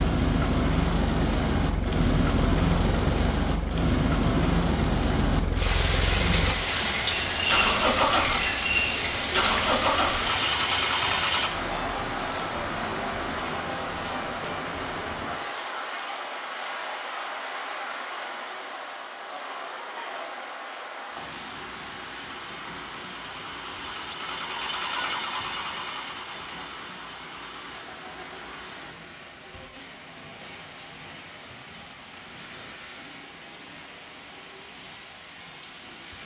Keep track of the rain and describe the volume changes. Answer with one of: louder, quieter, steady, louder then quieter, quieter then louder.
quieter.